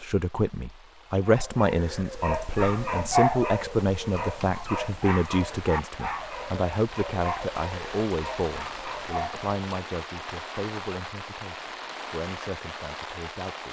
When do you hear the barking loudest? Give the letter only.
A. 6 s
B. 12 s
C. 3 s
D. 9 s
C.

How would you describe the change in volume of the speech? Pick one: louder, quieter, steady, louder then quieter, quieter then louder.
quieter.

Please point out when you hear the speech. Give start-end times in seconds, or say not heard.
0.0-13.6.